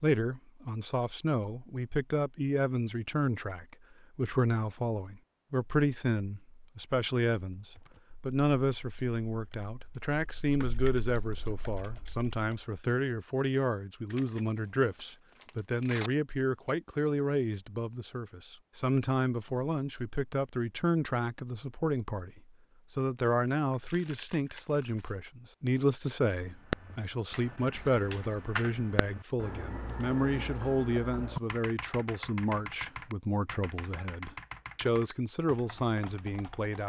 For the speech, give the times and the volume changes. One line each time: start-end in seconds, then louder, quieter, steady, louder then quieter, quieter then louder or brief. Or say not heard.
0.0-36.8 steady.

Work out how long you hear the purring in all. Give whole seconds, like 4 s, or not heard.
not heard.